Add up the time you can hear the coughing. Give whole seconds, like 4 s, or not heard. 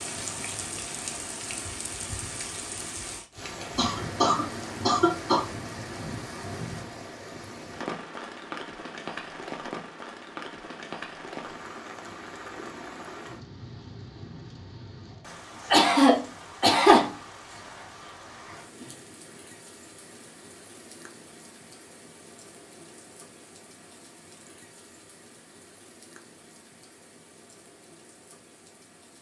3 s.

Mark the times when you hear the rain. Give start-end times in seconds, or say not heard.
0.0-29.1.